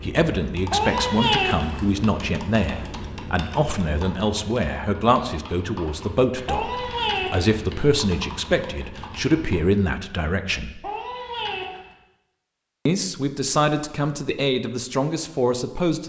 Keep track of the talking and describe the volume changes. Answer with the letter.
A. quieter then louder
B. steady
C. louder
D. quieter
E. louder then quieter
B.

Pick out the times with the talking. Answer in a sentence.
You can hear the talking from 0.0 to 10.8 s and from 12.8 to 16.0 s.